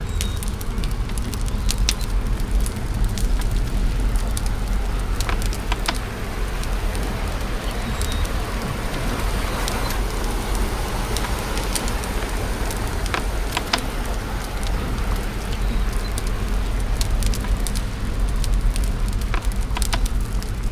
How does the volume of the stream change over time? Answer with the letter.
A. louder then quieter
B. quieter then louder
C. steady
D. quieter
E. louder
A.